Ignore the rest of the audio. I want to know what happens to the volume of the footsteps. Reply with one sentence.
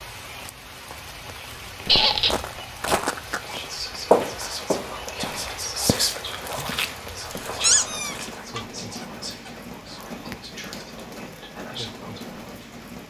The volume of the footsteps goes up, then down.